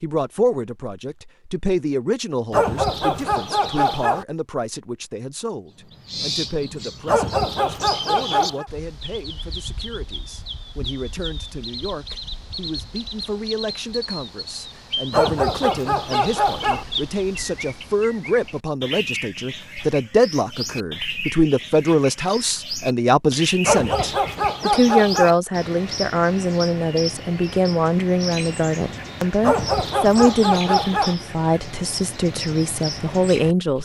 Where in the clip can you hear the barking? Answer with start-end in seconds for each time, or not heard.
2.5-4.2, 7.0-8.7, 15.1-16.9, 23.6-25.4, 29.4-31.1.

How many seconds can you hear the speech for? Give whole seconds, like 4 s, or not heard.
34 s.